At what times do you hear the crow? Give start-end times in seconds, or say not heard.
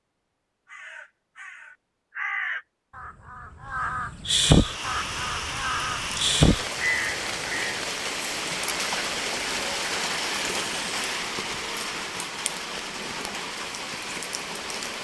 0.7-7.8.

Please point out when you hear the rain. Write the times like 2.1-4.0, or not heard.
4.5-15.0.